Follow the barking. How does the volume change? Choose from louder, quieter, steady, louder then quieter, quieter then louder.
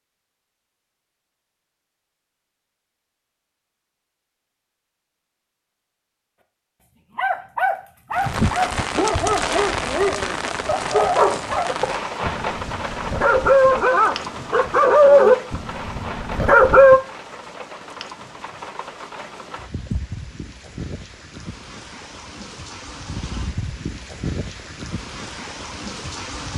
louder.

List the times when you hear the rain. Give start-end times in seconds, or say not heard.
8.1-26.5.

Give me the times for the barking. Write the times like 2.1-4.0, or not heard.
6.8-17.0.